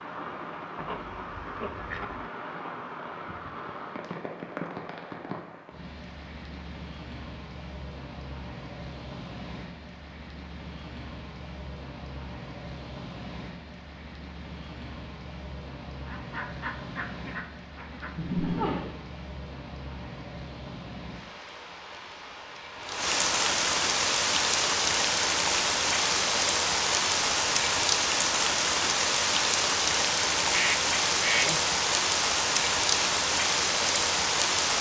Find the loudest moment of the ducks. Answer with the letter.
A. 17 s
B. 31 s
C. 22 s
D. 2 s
B.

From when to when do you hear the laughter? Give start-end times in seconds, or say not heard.
18.1-18.9.